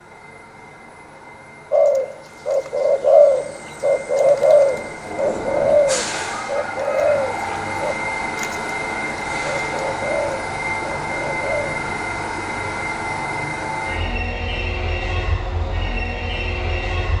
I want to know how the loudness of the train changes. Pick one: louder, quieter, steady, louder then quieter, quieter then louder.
louder.